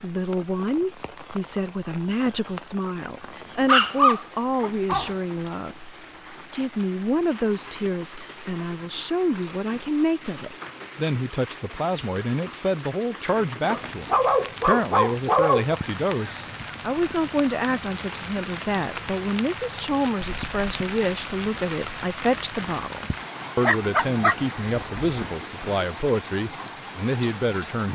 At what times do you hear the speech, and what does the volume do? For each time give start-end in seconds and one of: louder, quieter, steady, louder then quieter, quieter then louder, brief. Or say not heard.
0.0-27.9 steady.